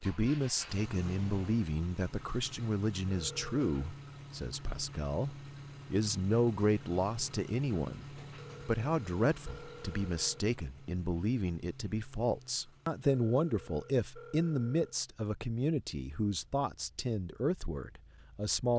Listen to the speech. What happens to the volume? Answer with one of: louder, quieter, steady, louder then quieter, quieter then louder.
steady.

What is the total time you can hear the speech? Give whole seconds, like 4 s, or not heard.
19 s.